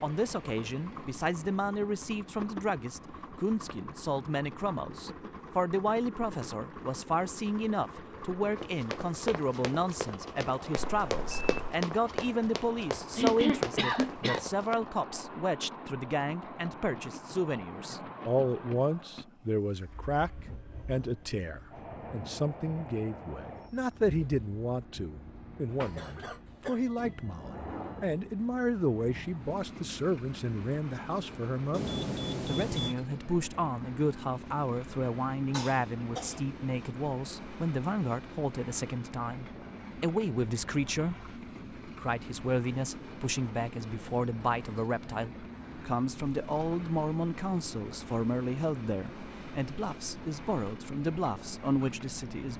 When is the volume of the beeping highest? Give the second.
32 s.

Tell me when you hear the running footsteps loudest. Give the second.
13 s.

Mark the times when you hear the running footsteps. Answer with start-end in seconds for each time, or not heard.
8.6-14.8.